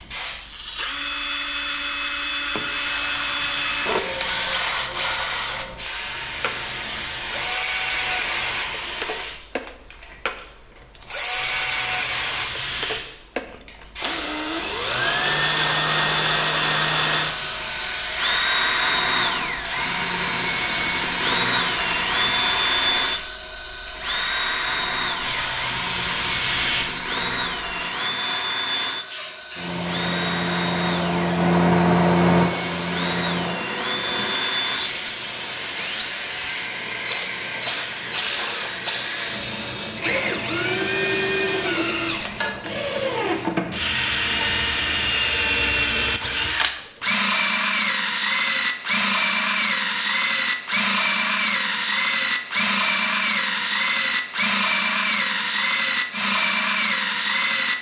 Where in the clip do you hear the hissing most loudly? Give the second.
32 s.